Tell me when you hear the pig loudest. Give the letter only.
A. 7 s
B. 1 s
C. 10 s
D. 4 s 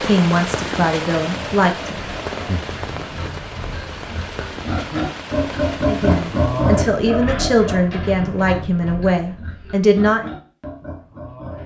A.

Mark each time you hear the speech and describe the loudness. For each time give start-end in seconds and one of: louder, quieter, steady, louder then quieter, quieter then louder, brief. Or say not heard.
0.0-1.9 brief
5.8-10.3 steady.